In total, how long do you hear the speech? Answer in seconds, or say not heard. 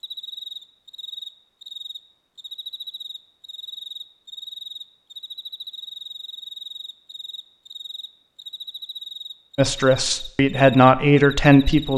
2 s.